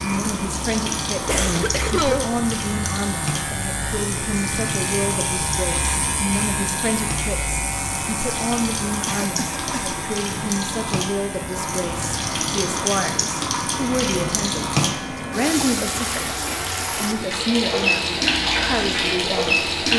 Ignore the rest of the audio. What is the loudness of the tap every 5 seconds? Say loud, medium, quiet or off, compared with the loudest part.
medium, medium, loud, loud.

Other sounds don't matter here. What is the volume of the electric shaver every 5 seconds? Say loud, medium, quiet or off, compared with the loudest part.
loud, loud, medium, medium.